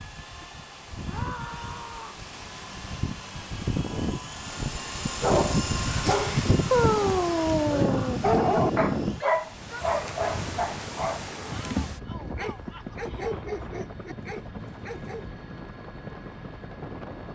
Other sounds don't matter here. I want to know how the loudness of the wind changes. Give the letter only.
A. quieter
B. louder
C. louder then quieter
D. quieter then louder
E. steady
C.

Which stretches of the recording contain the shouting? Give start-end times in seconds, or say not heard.
1.1-2.2, 9.2-9.8, 11.5-13.4.